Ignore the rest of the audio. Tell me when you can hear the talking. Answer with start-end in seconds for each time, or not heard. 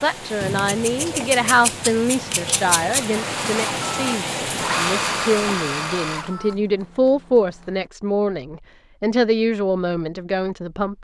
0.0-10.9.